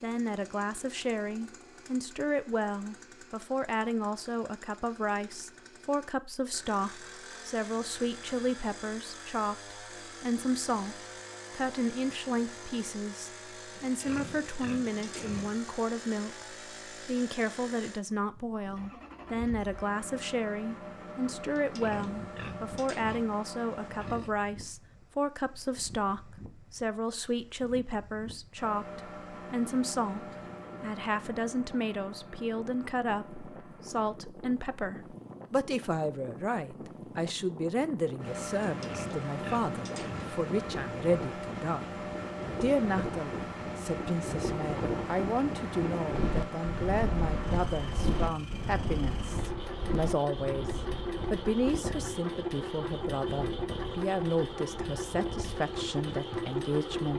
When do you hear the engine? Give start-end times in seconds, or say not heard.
0.0-24.2, 28.6-34.2, 38.1-57.1.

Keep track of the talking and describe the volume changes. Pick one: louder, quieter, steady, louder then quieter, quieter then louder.
steady.